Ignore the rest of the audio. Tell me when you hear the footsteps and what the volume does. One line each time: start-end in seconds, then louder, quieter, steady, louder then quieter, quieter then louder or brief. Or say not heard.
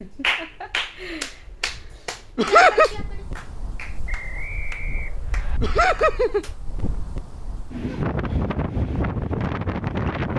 not heard.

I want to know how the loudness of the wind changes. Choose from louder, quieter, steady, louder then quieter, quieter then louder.
louder.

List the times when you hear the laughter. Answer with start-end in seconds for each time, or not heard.
2.4-2.9, 5.6-6.5.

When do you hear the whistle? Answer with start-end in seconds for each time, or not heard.
4.0-5.6.